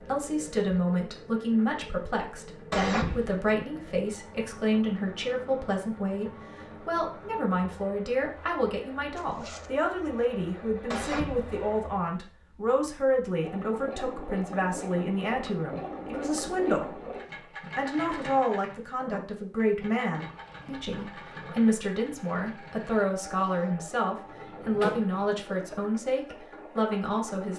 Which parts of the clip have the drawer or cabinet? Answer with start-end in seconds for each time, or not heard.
2.7-3.3, 10.9-11.7, 23.4-25.5.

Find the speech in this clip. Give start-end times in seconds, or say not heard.
0.0-17.1, 17.8-27.5.